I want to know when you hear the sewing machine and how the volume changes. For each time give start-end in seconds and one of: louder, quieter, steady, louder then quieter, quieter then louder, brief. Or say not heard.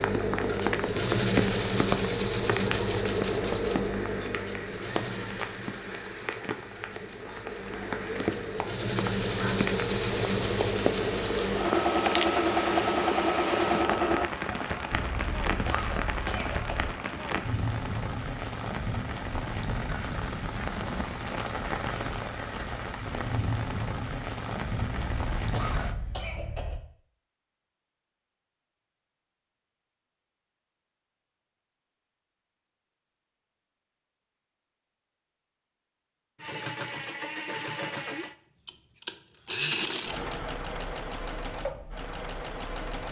0.0-14.3 quieter then louder
36.4-43.0 louder then quieter.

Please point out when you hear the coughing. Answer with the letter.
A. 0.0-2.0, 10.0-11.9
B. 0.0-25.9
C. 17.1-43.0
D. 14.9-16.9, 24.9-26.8
D.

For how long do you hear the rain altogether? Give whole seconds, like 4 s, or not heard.
26 s.